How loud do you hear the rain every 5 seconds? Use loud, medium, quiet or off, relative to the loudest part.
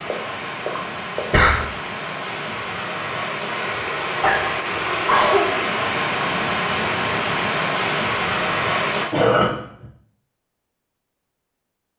medium, loud, off.